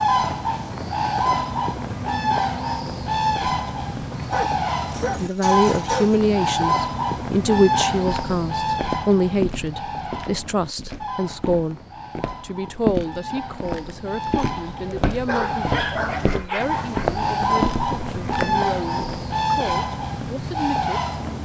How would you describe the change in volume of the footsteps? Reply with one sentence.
The volume of the footsteps goes down, then up.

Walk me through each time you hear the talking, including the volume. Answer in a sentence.
The talking can be heard from 5.2 to 21.4 s, getting quieter.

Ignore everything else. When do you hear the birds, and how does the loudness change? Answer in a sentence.
The birds can be heard from 0.0 to 21.4 s, getting quieter then louder.